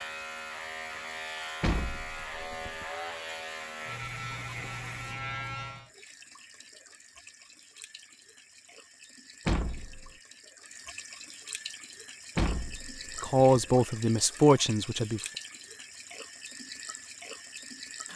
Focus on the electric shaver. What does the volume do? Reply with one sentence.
The volume of the electric shaver stays about the same.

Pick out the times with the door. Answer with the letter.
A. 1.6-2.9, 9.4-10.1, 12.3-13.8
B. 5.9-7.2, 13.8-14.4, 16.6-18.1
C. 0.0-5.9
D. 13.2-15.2
A.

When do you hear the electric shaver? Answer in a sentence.
The electric shaver can be heard from 0.0 to 5.9 s.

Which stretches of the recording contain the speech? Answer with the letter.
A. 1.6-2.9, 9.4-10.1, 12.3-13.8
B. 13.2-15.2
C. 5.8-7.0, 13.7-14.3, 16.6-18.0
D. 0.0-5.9
B.